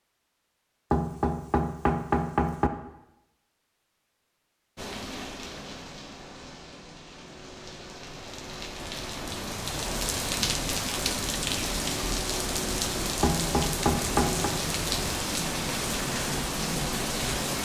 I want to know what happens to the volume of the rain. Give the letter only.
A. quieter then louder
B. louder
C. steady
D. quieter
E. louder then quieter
B.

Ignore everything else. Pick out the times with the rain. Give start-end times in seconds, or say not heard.
4.8-17.6.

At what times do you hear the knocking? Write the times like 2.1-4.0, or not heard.
0.9-2.7, 13.2-14.5.